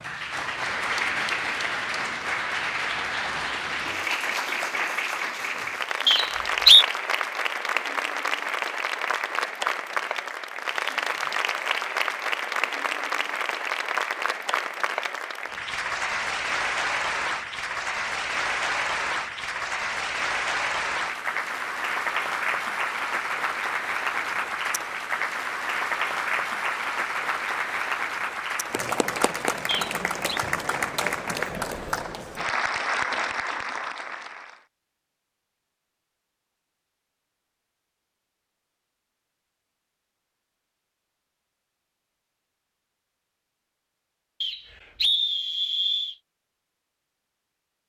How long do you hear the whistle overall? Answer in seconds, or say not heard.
3 s.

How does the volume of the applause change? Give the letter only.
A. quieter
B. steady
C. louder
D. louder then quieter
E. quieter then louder
B.